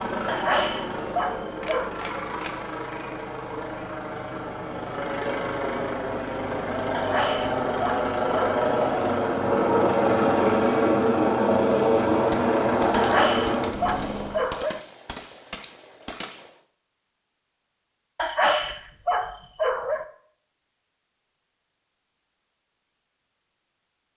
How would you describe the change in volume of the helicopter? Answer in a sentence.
The volume of the helicopter goes up.